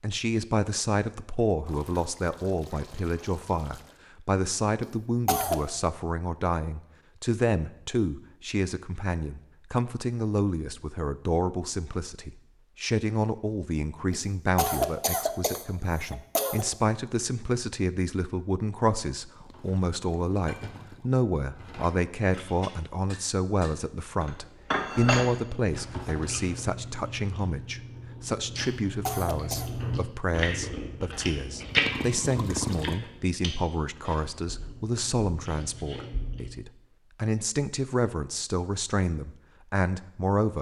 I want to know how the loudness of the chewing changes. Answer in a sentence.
The loudness of the chewing goes up, then down.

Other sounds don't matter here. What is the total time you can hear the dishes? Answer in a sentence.
The dishes can be heard for 7 seconds in total.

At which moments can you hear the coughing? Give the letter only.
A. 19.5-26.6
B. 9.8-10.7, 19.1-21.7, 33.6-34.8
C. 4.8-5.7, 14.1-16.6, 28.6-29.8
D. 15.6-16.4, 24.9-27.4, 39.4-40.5
C.